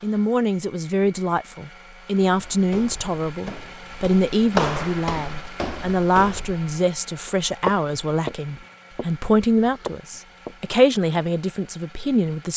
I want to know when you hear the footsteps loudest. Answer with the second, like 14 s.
5 s.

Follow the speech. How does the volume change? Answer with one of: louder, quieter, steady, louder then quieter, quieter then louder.
steady.